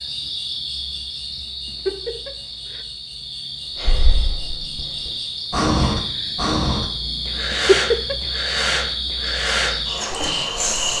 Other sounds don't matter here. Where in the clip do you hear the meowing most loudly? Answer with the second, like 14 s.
8 s.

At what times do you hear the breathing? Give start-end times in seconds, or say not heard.
3.8-10.9.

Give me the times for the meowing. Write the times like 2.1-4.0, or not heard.
1.6-2.8, 7.5-8.2.